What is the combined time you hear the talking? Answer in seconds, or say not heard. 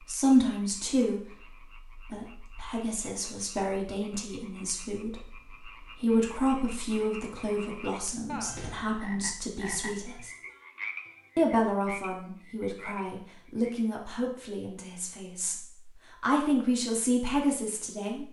17 s.